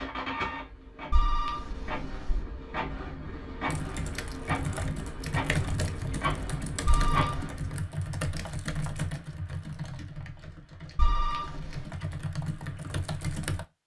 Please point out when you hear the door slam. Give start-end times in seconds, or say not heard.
not heard.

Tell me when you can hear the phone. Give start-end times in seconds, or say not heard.
1.1-2.5, 6.8-7.5, 10.9-11.9.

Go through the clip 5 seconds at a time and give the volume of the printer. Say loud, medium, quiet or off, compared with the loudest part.
loud, loud, off.